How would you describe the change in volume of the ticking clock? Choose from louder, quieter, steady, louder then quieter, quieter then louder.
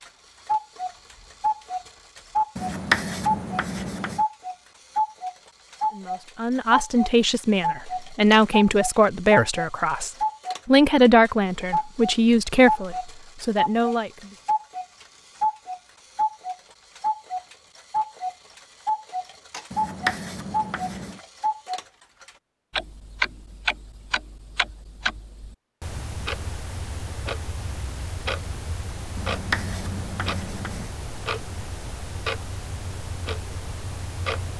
quieter.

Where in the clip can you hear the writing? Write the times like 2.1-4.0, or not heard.
2.5-4.2, 19.7-21.2, 29.1-30.9.